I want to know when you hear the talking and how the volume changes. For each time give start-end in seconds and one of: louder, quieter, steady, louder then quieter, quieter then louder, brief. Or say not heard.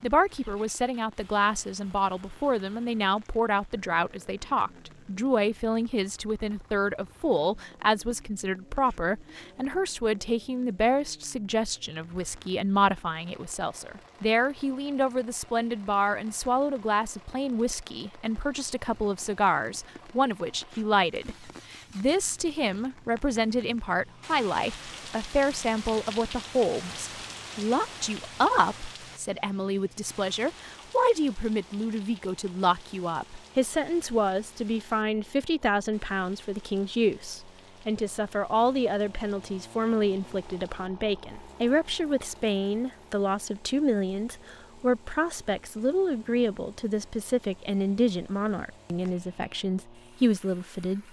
0.0-51.0 steady.